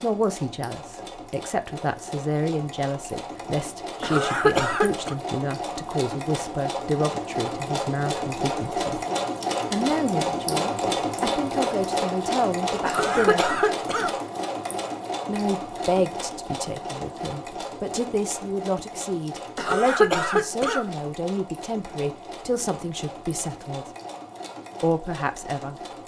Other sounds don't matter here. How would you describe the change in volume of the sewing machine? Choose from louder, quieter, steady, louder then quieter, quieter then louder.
louder then quieter.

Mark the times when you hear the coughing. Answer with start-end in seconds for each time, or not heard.
4.0-5.2, 12.8-14.1, 19.6-20.9.